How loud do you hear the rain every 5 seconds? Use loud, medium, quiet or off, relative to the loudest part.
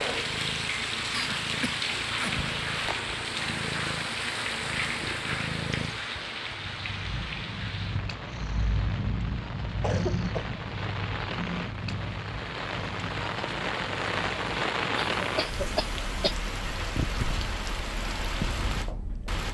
loud, medium, loud, loud.